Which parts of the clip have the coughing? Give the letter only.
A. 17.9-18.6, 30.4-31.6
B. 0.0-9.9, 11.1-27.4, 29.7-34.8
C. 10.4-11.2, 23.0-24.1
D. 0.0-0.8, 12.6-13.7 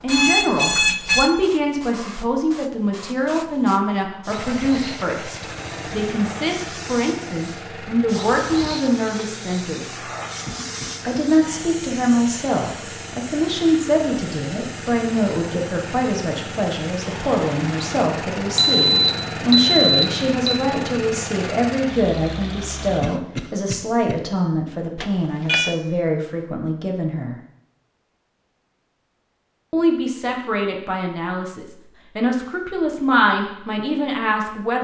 C.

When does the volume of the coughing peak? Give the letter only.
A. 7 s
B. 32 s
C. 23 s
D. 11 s
C.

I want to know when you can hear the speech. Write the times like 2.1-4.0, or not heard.
0.0-9.9, 11.1-27.4, 29.7-34.8.